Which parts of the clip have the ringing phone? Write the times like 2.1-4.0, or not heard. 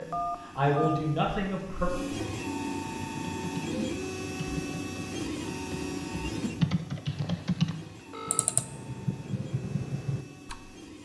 0.1-1.1, 7.0-8.5.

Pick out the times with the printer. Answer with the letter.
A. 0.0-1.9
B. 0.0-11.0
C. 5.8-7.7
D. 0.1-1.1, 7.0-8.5
B.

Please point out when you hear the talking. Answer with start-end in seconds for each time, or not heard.
0.0-1.9.